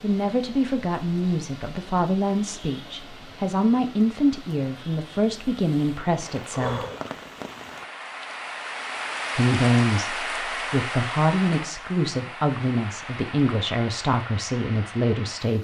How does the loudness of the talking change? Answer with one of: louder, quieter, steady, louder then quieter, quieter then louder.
steady.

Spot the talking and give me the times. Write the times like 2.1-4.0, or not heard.
0.0-6.8, 9.3-15.5.